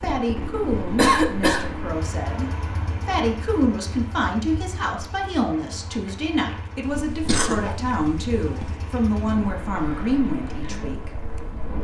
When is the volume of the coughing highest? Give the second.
1 s.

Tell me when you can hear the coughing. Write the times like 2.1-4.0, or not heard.
0.9-1.6, 6.8-8.8.